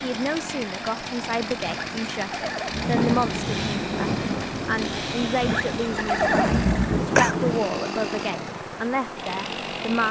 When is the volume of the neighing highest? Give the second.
7 s.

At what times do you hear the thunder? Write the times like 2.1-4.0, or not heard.
2.8-7.7.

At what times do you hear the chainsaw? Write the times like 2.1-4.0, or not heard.
0.0-10.0.